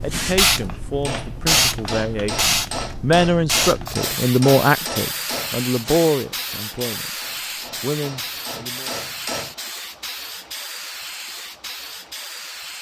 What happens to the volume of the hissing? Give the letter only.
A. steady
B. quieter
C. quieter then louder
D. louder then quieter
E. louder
B.